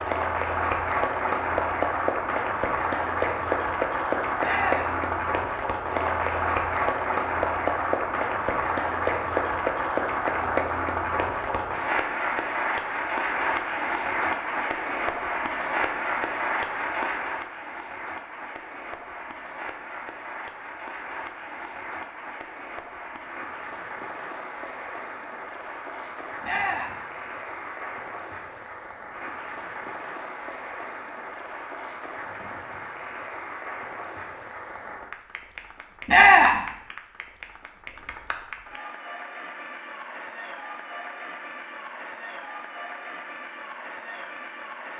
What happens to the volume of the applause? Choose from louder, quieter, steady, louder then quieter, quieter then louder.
quieter.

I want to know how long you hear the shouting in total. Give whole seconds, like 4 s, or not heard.
2 s.